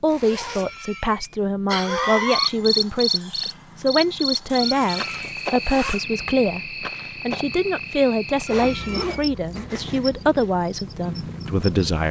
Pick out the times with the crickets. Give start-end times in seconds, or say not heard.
2.3-12.0.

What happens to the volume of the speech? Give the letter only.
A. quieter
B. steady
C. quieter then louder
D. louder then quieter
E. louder
B.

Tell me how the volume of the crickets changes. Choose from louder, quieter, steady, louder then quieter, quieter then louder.
quieter.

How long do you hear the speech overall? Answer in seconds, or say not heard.
12 s.